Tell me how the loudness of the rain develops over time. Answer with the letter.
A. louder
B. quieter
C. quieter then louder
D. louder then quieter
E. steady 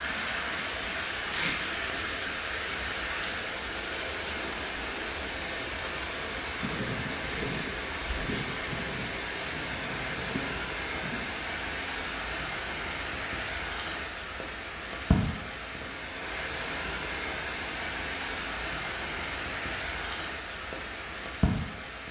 E.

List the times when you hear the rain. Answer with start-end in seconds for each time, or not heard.
0.0-22.0.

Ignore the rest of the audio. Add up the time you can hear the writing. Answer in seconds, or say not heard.
5 s.